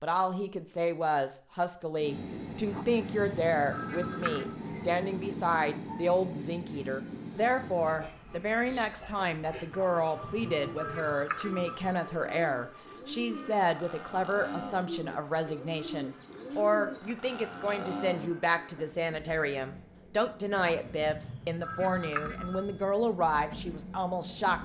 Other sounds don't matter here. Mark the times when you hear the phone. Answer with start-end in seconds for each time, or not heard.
2.6-4.6, 9.7-11.9, 20.6-22.9.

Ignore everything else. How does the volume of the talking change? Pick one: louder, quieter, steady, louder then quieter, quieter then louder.
steady.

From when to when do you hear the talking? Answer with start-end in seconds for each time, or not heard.
0.0-24.5.